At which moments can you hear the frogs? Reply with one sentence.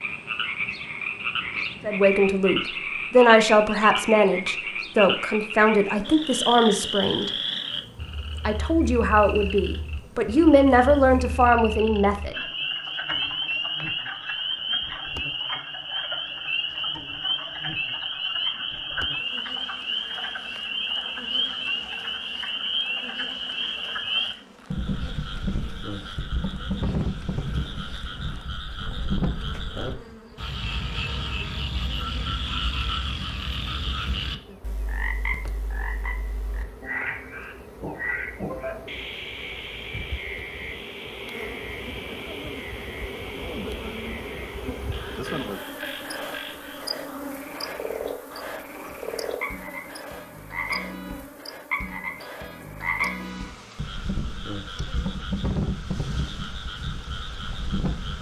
You can hear the frogs from 0.0 to 58.1 s.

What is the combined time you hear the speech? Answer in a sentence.
You can hear the speech for 9 seconds altogether.